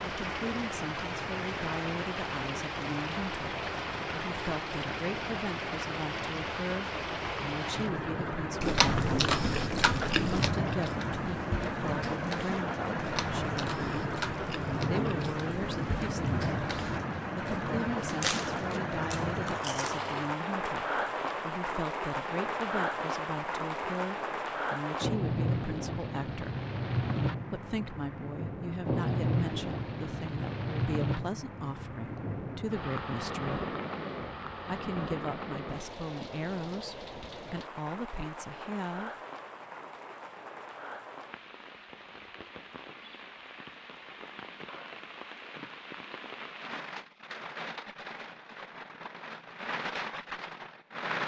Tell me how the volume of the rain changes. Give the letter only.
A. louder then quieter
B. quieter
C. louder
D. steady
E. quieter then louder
B.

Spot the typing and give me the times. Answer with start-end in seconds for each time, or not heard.
not heard.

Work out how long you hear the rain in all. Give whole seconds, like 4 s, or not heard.
51 s.